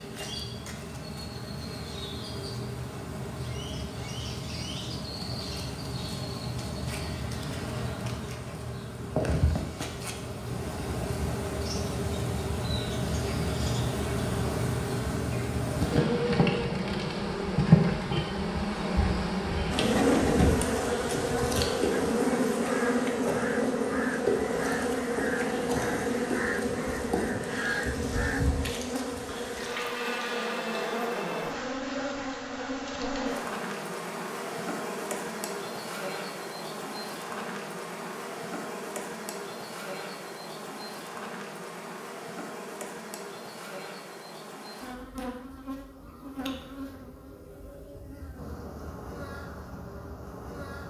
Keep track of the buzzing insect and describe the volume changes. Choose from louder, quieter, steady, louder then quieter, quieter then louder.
louder then quieter.